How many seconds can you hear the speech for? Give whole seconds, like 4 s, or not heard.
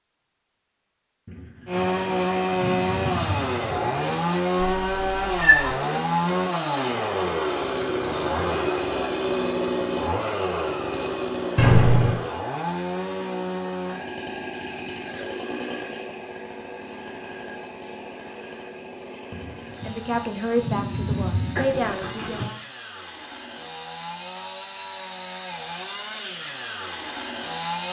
3 s.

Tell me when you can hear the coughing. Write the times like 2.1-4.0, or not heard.
not heard.